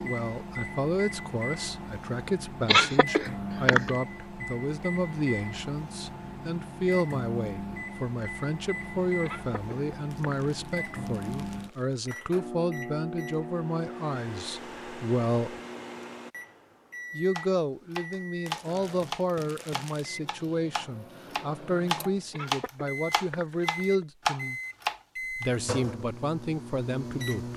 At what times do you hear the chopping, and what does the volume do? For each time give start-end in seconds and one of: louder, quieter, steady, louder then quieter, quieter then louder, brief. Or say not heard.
17.4-25.4 quieter then louder.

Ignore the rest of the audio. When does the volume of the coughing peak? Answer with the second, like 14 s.
3 s.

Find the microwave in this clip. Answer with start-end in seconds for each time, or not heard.
0.0-27.5.